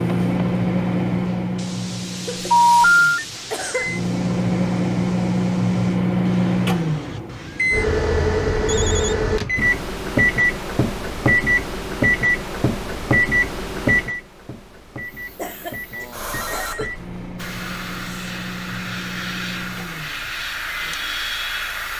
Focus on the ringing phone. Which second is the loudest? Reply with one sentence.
The loudest moment of the ringing phone is at 3 seconds.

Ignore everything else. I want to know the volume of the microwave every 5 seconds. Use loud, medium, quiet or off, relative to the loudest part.
loud, loud, loud, quiet, quiet.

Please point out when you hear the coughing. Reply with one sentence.
You can hear the coughing from 2.2 to 4.0 s and from 15.3 to 16.9 s.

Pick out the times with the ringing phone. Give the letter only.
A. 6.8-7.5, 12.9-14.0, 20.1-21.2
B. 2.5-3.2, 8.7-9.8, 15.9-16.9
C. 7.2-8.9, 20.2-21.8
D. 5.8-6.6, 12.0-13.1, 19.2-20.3
B.